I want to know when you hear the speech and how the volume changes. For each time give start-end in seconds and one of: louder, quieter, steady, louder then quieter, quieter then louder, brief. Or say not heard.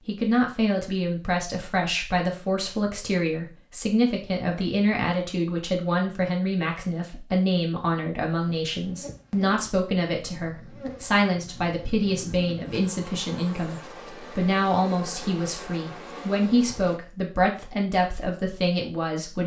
0.1-19.4 steady.